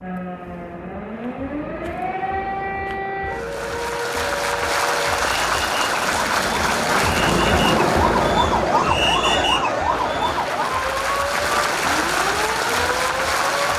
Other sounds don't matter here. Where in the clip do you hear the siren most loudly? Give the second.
9 s.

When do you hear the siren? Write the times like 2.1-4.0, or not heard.
0.0-13.7.